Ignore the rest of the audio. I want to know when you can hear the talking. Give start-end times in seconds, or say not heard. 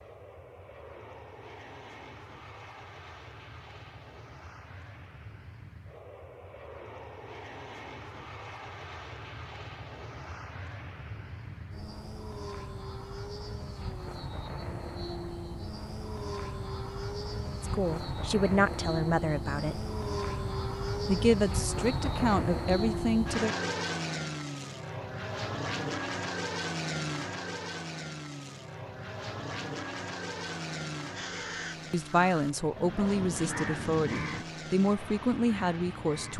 17.6-19.9, 21.1-23.6, 31.9-36.3.